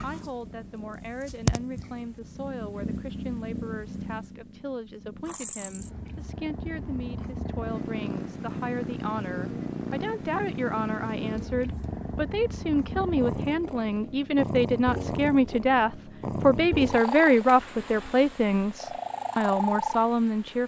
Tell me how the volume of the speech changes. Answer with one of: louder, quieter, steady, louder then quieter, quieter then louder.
louder.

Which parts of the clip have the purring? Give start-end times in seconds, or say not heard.
0.0-20.6.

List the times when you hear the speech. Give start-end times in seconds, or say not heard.
0.0-20.6.